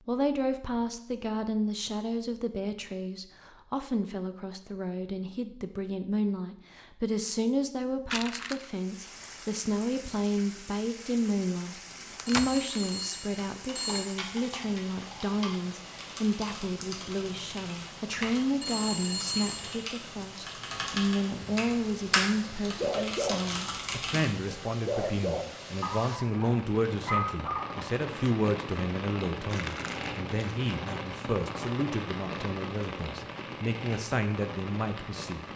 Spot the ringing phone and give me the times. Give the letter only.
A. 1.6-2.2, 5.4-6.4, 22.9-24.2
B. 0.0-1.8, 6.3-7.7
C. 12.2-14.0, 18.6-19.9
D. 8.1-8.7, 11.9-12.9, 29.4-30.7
C.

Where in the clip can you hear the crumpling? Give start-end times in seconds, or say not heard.
8.1-8.7, 11.9-12.9, 29.4-30.7.